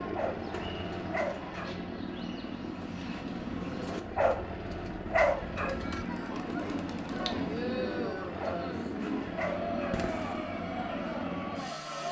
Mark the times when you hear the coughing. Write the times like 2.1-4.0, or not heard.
not heard.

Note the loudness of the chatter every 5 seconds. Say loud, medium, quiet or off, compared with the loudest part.
off, loud, loud.